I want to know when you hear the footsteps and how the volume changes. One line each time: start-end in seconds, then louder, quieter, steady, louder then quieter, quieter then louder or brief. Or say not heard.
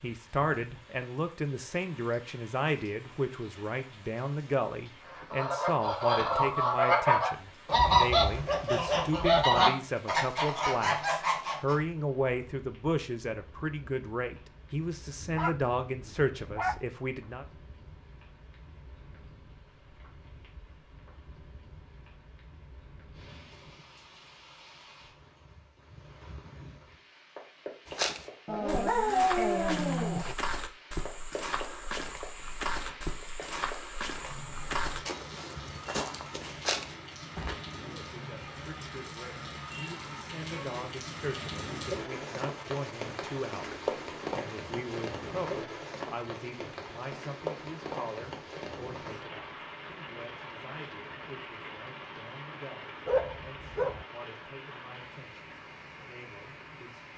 27.9-37.5 steady.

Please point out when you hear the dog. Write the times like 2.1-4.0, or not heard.
15.2-16.8, 28.4-30.4, 53.0-54.0.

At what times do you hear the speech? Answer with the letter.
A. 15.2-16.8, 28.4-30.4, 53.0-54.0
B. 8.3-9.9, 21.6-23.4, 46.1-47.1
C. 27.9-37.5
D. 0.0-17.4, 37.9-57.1
D.